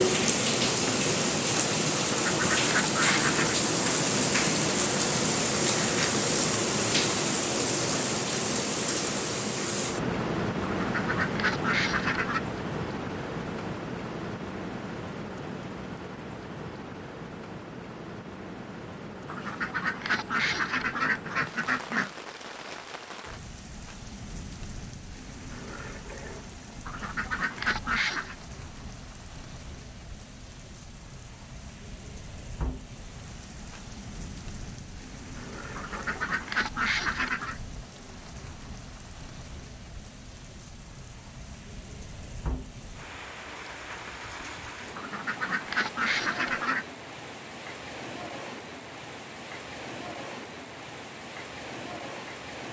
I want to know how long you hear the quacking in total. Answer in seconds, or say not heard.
11 s.